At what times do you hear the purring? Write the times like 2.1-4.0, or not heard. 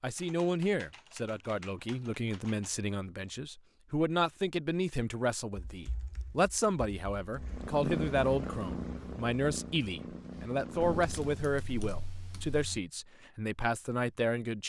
7.3-11.6.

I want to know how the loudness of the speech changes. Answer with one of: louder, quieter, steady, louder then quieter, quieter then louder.
steady.